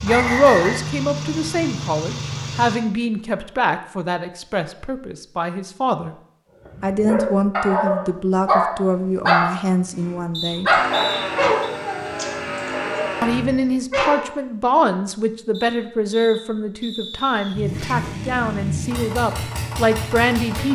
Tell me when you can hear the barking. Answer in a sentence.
The barking can be heard from 6.8 to 14.2 s.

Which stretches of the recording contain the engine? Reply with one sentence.
The engine can be heard from 0.0 to 2.8 s, from 10.7 to 13.6 s and from 17.5 to 20.7 s.